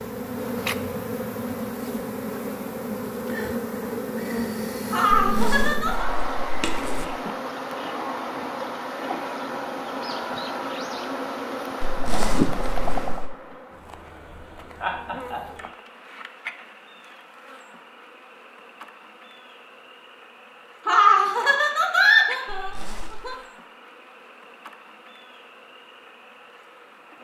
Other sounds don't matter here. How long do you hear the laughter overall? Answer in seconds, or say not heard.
4 s.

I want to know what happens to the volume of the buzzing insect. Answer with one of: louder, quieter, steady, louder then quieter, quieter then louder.
quieter.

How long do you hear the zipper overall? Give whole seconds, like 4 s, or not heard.
4 s.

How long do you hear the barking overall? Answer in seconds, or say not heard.
not heard.